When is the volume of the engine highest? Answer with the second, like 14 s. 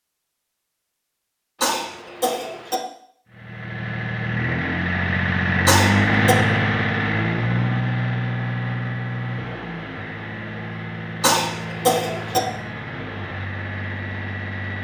6 s.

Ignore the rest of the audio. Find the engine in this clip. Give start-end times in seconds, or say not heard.
3.2-14.7.